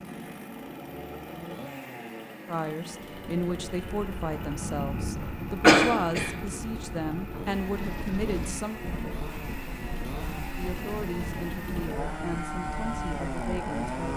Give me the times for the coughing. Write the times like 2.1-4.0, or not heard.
5.0-6.3.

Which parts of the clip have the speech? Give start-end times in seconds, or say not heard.
2.5-8.8, 10.6-14.1.